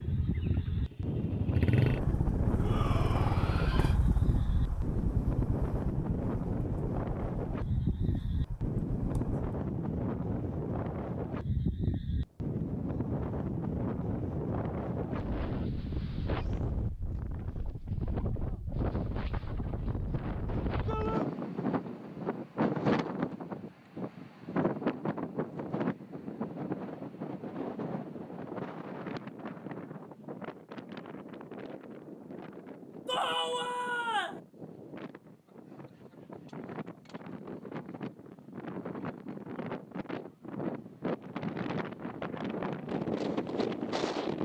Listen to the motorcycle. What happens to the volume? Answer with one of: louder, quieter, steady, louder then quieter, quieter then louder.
quieter.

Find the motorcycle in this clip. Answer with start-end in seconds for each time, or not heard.
0.0-9.5.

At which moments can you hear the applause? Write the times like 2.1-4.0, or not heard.
not heard.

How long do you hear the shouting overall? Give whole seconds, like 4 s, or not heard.
3 s.